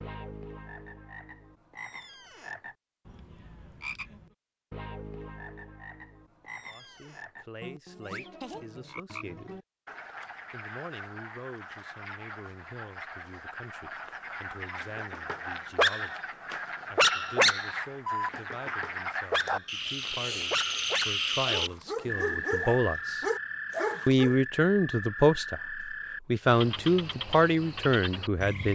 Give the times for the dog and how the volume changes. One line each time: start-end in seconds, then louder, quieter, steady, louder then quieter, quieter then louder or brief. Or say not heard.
14.9-24.4 quieter.